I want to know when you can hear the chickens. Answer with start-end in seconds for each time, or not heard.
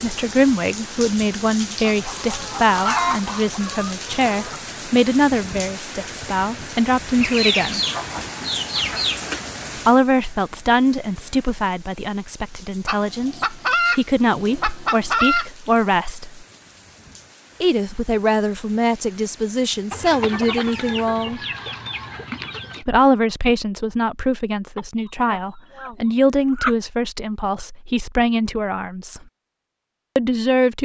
1.8-4.6, 7.2-9.4, 12.8-15.5, 19.9-22.9, 24.8-26.8.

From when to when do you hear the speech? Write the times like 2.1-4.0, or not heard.
0.0-7.8, 9.8-16.4, 17.6-21.4, 22.8-29.2, 30.1-30.8.